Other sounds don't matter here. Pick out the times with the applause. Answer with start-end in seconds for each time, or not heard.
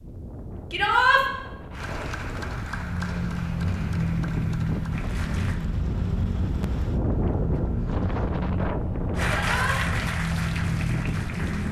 1.7-5.6, 9.2-11.6.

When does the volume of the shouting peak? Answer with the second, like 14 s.
1 s.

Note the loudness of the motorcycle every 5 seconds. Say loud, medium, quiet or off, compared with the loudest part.
loud, medium, loud.